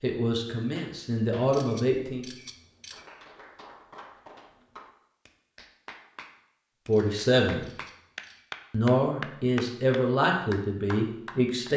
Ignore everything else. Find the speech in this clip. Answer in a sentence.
You can hear the speech from 0.0 to 2.2 s, from 6.8 to 7.7 s and from 8.7 to 11.7 s.